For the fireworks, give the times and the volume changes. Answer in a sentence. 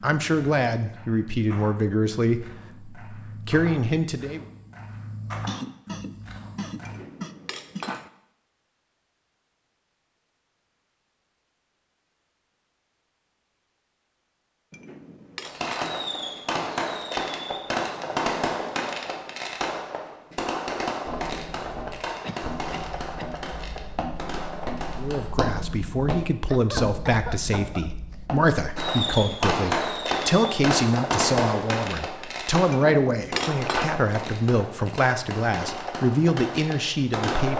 The fireworks can be heard from 15.4 to 25.3 s, getting quieter; and from 28.8 to 37.5 s, getting quieter.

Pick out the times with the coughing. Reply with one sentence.
The coughing can be heard from 5.5 to 8.0 s, from 22.2 to 23.4 s and from 26.4 to 28.2 s.